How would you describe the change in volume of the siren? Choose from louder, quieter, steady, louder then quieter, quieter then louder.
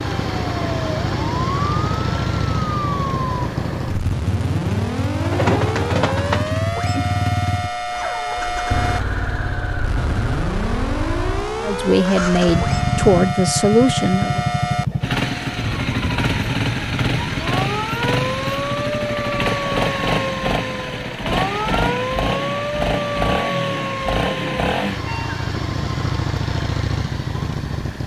steady.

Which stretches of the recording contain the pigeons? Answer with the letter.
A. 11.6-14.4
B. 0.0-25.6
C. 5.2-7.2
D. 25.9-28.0
C.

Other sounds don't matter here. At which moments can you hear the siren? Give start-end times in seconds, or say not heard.
0.0-25.6.